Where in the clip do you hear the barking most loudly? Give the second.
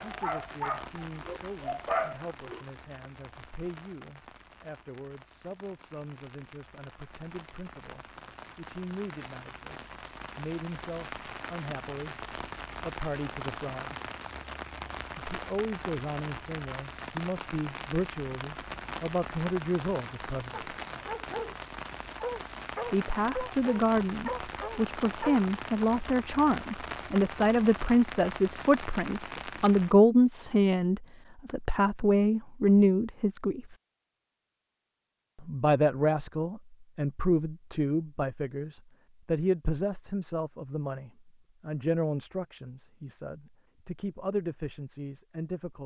2 s.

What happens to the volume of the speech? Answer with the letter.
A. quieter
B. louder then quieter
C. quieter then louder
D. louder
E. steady
B.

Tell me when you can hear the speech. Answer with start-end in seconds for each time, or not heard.
0.0-13.9, 15.2-20.7, 22.9-33.6, 35.4-45.8.